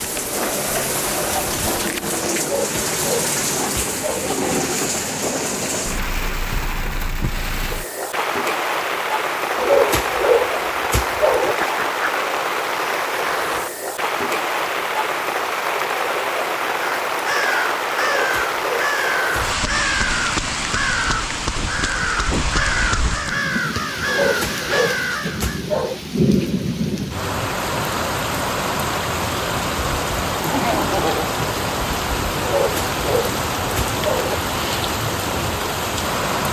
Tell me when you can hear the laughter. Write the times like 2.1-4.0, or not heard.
11.4-12.3, 30.4-31.4.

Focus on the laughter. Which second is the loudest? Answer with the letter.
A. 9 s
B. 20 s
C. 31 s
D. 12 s
C.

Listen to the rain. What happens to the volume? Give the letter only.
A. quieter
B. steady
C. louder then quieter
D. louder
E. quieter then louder
B.